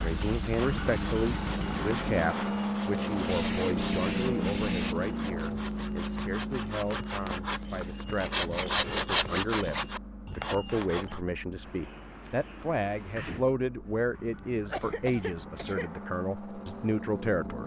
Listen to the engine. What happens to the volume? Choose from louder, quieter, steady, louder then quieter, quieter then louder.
quieter then louder.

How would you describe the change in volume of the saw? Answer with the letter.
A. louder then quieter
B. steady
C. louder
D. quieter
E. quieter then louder
C.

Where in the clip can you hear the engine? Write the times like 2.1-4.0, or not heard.
0.0-17.6.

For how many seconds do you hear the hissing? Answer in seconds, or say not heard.
2 s.